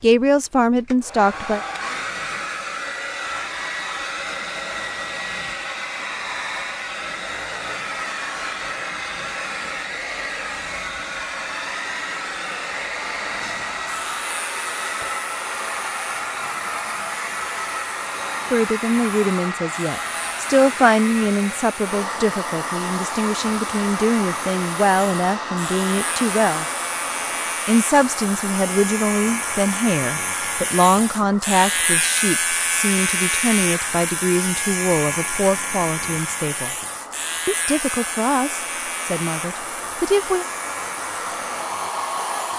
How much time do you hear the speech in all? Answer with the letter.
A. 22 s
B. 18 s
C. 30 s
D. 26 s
A.